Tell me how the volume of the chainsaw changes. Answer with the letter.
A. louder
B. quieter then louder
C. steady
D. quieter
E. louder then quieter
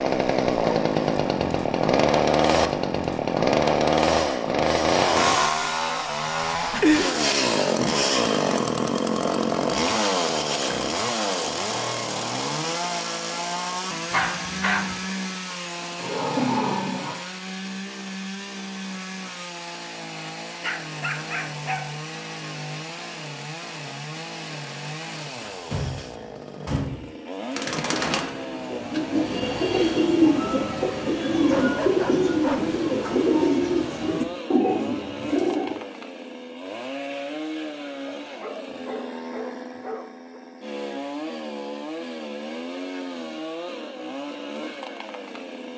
D.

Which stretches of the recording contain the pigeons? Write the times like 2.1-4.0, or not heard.
27.6-35.8.